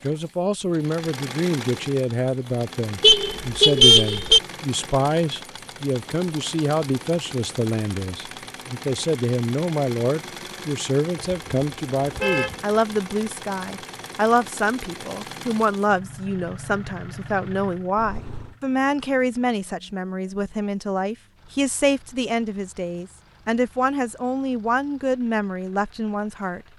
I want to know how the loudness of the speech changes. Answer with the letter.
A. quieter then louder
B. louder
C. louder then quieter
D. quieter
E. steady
E.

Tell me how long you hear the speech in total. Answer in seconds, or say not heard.
27 s.